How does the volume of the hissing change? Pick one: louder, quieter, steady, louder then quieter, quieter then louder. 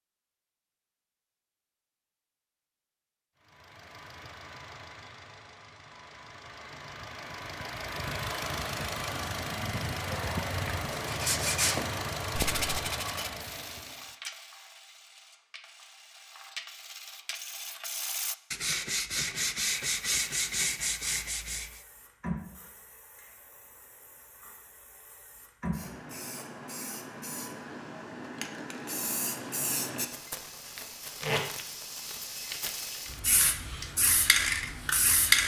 louder.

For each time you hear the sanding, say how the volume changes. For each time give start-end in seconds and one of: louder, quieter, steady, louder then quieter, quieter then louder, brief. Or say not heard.
10.9-21.8 quieter then louder.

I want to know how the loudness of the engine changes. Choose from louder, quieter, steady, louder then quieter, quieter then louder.
louder.